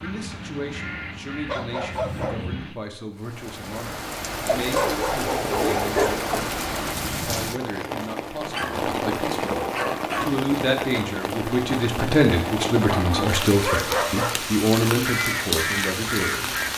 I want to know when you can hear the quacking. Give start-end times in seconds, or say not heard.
0.0-2.8, 15.0-16.7.